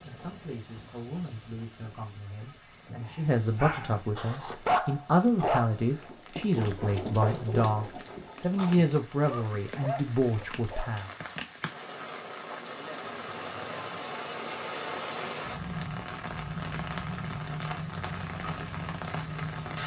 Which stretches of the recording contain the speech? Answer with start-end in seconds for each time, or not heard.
0.0-11.1.